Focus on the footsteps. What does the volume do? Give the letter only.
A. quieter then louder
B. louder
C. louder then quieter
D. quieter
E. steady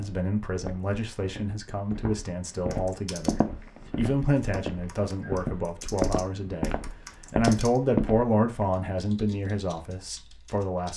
B.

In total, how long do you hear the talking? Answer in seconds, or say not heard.
11 s.